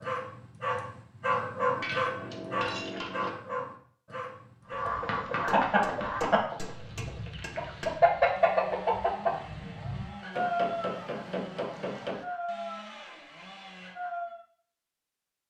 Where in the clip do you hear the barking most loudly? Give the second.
2 s.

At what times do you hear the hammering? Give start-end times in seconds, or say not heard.
1.8-3.3, 5.5-8.0, 10.3-12.2.